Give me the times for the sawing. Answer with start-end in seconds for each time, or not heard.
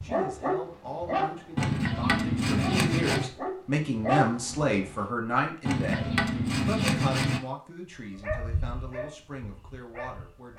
1.6-3.3, 5.7-7.4.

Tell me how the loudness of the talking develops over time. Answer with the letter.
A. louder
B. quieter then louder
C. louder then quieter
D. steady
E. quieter
C.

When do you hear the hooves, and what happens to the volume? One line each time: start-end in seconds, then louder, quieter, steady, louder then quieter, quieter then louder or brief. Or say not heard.
not heard.